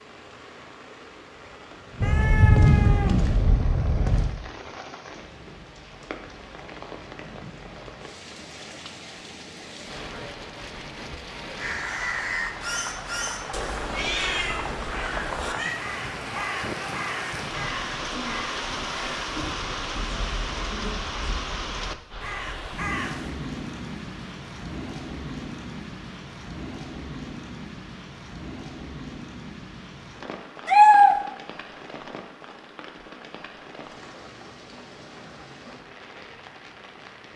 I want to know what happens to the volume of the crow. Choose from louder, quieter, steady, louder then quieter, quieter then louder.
quieter.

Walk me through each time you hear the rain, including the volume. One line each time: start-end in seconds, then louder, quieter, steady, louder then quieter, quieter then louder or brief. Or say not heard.
0.0-37.3 louder then quieter.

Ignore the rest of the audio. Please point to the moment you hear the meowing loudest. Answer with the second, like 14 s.
31 s.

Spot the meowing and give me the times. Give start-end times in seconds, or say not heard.
2.0-4.3, 13.9-15.7, 30.6-31.1.